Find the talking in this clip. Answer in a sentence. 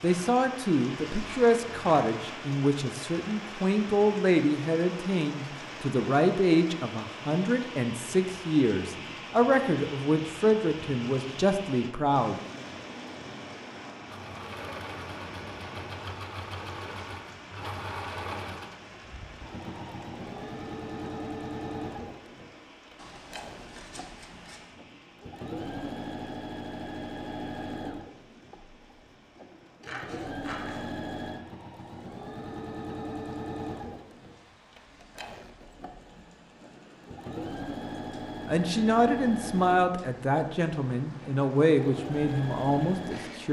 You can hear the talking from 0.0 to 12.4 s and from 38.5 to 43.4 s.